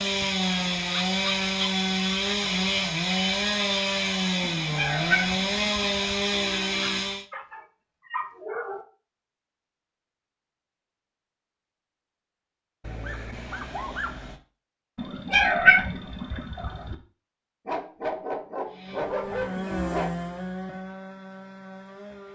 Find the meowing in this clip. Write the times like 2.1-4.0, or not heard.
4.4-6.2, 14.9-16.9.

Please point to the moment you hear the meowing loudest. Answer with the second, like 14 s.
16 s.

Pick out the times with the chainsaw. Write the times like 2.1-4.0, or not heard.
0.0-7.2, 18.6-22.3.